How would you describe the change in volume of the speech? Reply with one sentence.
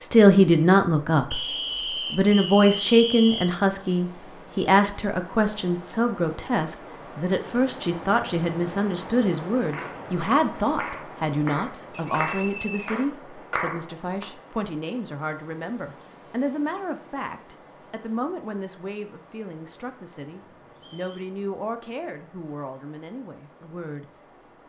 The loudness of the speech goes down.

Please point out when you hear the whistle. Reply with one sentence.
You can hear the whistle from 1.3 to 3.5 s, from 11.9 to 13.0 s and from 20.8 to 21.3 s.